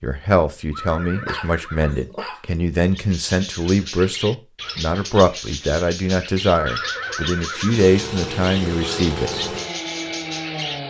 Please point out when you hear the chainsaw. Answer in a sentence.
The chainsaw can be heard from 7.7 to 10.8 s.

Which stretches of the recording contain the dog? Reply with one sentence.
You can hear the dog from 1.1 to 2.5 s.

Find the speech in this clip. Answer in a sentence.
You can hear the speech from 0.0 to 9.5 s.